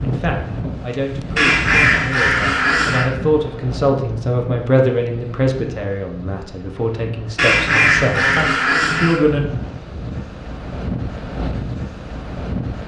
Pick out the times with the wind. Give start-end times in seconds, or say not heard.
0.0-12.8.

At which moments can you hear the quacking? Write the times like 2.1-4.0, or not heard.
1.4-3.0, 7.3-9.2.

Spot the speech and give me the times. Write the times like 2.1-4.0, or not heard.
0.0-9.4.